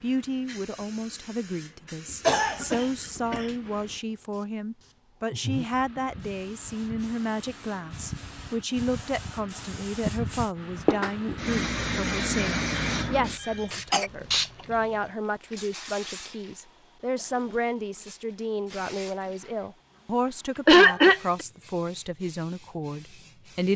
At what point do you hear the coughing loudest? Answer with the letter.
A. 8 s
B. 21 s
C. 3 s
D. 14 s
B.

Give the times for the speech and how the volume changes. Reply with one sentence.
The speech can be heard from 0.0 to 23.7 s, at a steady volume.